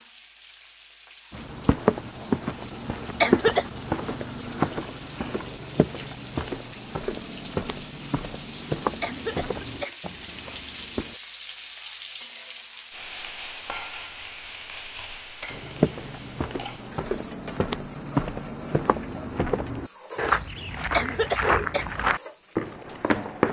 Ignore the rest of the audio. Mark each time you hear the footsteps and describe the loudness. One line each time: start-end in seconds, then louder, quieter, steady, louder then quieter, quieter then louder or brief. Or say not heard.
1.3-11.2 quieter
15.5-23.4 louder.